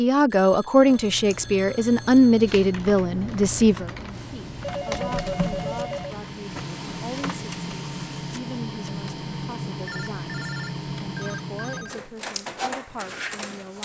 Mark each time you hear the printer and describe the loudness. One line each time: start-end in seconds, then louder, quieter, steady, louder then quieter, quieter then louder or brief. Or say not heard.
4.1-13.8 steady.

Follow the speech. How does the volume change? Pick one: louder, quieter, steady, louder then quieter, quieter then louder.
quieter.